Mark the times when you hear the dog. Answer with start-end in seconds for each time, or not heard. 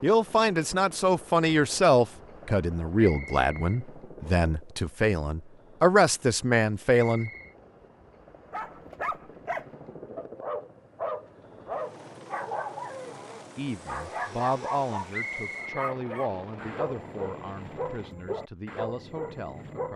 8.5-19.9.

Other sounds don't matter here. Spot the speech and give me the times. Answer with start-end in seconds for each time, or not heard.
0.0-7.3, 13.6-19.9.